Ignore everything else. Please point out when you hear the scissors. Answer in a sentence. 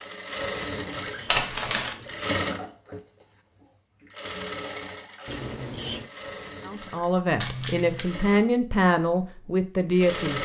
The scissors can be heard from 0.8 to 2.4 s and from 5.2 to 6.0 s.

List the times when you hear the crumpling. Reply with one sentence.
The crumpling can be heard from 1.2 to 1.9 s and from 7.3 to 8.1 s.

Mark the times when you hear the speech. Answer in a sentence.
The speech can be heard from 6.7 to 10.3 s.